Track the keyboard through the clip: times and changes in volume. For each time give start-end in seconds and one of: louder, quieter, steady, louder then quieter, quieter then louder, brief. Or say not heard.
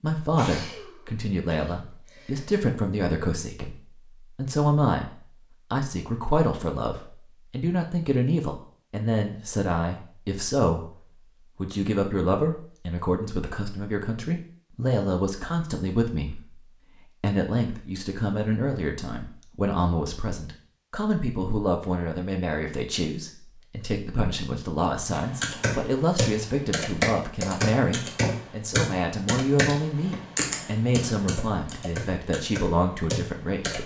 25.1-33.8 quieter.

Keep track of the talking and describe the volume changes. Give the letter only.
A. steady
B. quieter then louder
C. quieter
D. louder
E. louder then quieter
A.